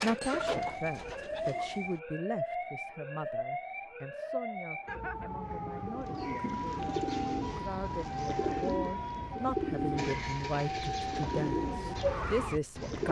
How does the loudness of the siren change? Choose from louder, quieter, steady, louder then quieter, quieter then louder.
steady.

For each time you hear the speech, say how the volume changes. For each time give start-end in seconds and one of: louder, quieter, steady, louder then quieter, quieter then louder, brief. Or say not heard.
0.0-13.0 quieter then louder.